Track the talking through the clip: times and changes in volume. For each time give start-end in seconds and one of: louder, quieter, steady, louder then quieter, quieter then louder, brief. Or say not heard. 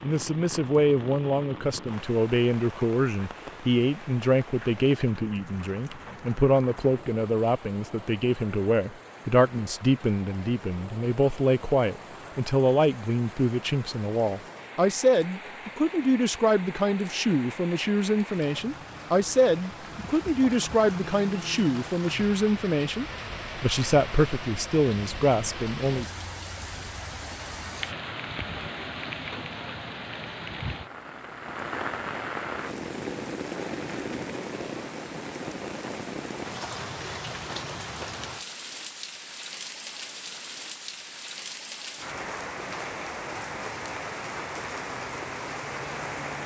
0.0-26.1 steady.